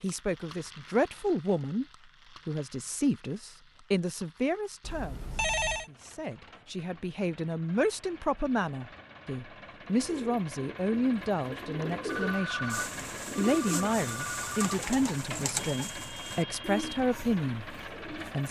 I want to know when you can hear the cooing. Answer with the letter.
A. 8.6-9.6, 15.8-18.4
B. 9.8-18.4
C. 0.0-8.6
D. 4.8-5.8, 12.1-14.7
B.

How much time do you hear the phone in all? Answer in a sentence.
You can hear the phone for 4 seconds altogether.